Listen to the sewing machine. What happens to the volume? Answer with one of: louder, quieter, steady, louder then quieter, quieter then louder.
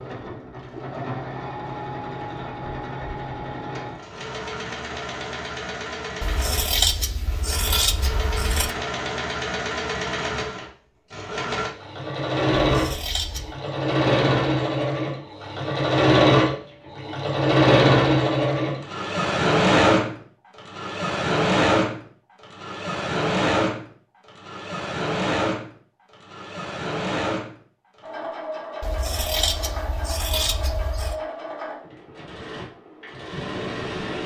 louder then quieter.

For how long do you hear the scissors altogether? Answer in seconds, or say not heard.
6 s.